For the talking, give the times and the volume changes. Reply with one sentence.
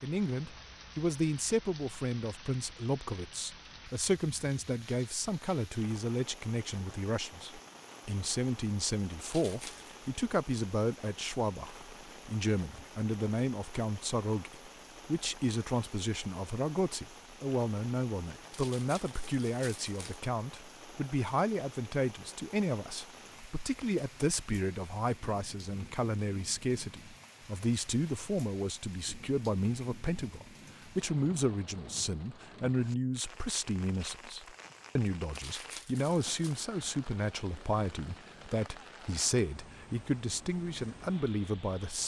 The talking can be heard from 0.0 to 42.0 s, at a steady volume.